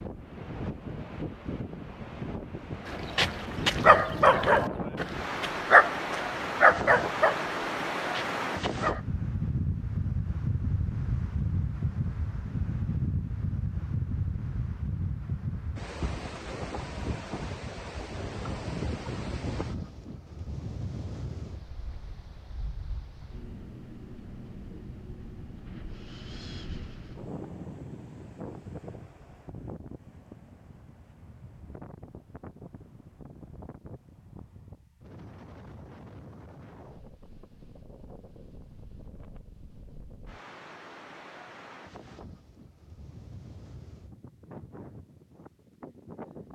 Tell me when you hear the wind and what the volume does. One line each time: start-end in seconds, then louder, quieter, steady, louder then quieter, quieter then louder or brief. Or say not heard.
0.0-46.4 quieter.